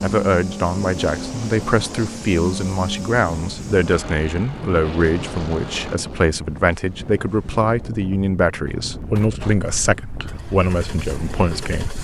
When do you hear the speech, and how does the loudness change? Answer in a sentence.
You can hear the speech from 0.0 to 11.9 s, at a steady volume.